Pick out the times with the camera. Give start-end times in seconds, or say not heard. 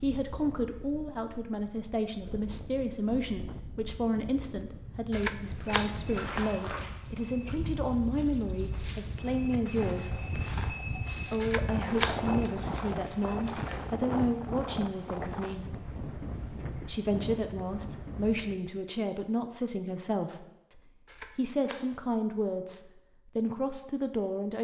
5.1-6.2, 11.4-12.7, 21.1-21.9.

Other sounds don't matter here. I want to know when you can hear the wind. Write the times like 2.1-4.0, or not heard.
0.0-18.6.